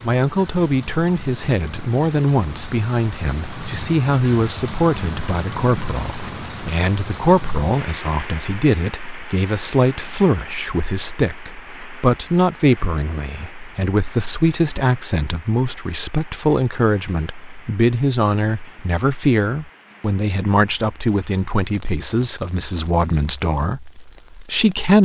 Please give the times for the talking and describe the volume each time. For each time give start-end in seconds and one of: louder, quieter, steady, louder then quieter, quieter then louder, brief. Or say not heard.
0.0-25.0 steady.